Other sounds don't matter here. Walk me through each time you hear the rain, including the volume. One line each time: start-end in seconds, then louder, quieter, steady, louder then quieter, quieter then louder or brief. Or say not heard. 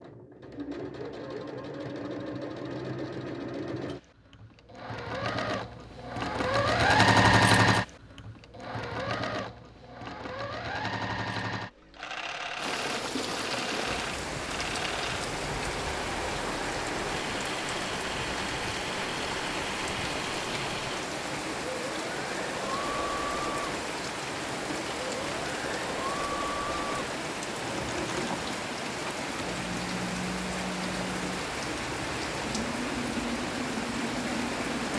12.6-34.9 steady.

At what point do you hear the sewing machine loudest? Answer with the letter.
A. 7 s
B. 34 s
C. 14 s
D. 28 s
A.